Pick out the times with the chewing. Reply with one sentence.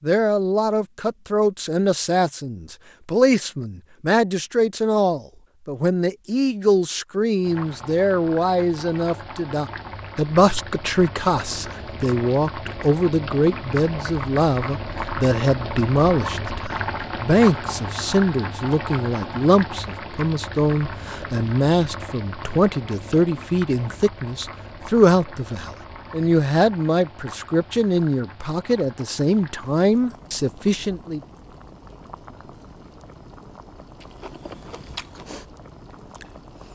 You can hear the chewing from 34.0 to 36.7 s.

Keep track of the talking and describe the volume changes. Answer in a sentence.
The volume of the talking stays about the same.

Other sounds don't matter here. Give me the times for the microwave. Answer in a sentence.
The microwave can't be heard in this clip.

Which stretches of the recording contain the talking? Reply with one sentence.
You can hear the talking from 0.0 to 31.2 s.